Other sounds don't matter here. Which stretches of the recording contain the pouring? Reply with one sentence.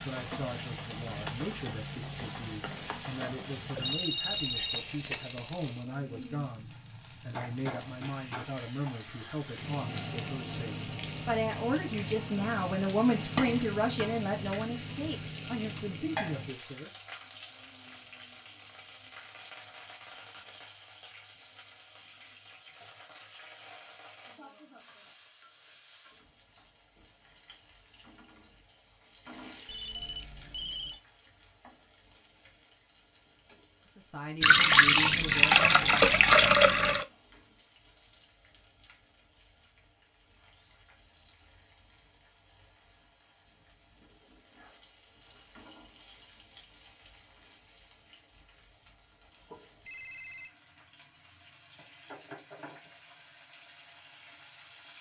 The pouring can be heard from 34.4 to 37.0 s.